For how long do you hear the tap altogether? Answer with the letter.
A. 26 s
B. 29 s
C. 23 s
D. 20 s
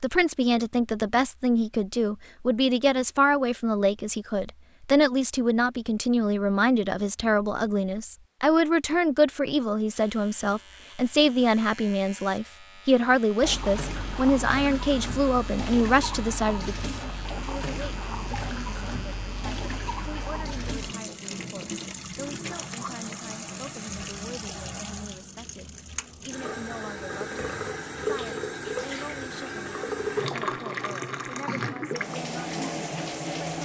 D.